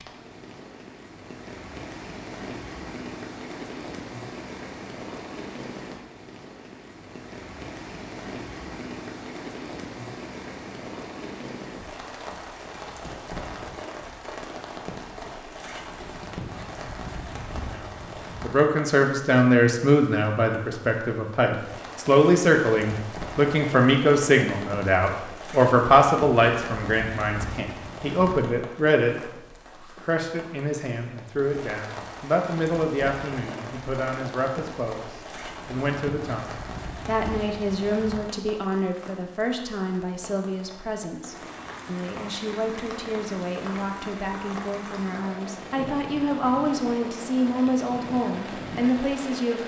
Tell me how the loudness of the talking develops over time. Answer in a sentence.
The loudness of the talking goes down.